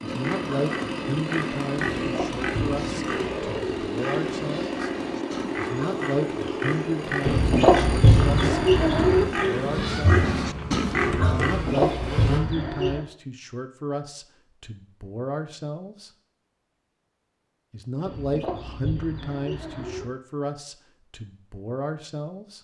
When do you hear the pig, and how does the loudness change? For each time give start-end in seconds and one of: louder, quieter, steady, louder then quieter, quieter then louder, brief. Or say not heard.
0.1-11.7 louder.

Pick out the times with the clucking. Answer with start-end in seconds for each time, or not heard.
2.0-3.8, 7.2-9.2, 11.4-13.1, 18.1-20.1.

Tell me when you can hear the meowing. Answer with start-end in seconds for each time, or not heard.
9.8-11.3.